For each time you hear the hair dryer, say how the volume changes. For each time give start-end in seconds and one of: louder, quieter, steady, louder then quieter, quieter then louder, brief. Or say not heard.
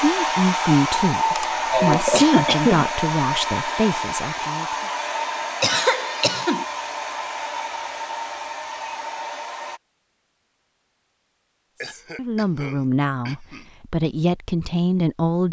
0.0-9.8 quieter.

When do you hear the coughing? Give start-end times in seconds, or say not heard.
1.4-2.9, 5.6-6.7, 11.8-13.7.